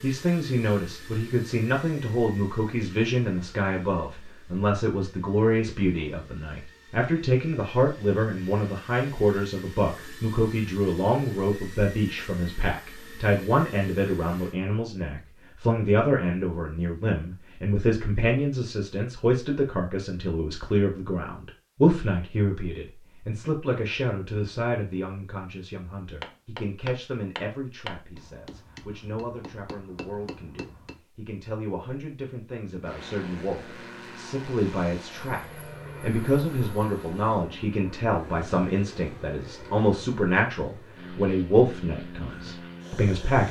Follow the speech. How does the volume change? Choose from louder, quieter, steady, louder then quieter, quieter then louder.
quieter then louder.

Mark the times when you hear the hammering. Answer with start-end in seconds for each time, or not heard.
26.2-31.0.